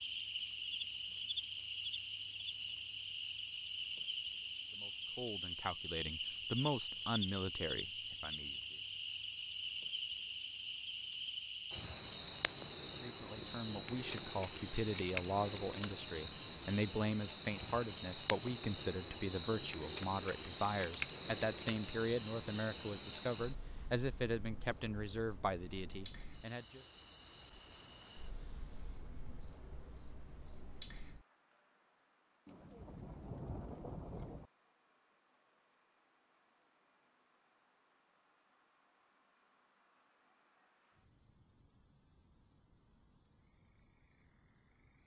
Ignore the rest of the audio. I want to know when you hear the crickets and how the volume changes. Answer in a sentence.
You can hear the crickets from 0.0 to 45.0 s, getting quieter.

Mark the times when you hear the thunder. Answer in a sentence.
You can hear the thunder from 32.5 to 34.5 s.